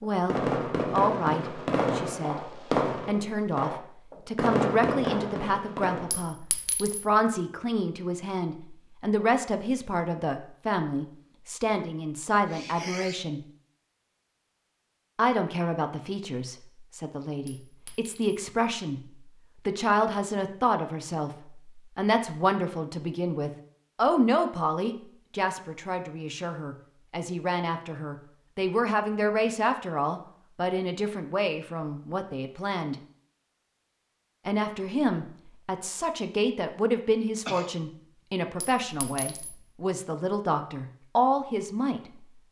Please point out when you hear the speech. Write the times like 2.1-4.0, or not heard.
0.0-13.4, 15.2-33.0, 34.5-42.0.